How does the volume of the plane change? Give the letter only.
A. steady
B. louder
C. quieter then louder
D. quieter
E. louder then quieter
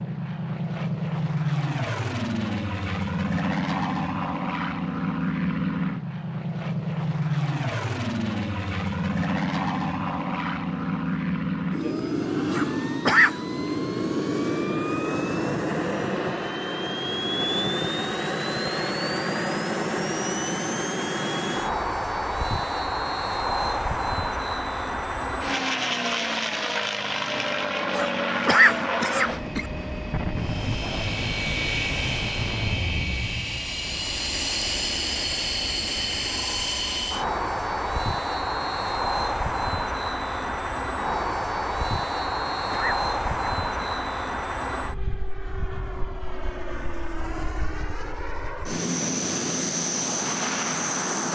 A.